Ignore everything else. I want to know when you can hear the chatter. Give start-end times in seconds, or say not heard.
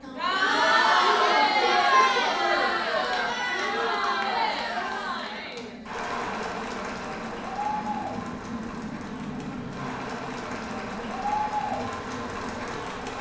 0.0-13.1.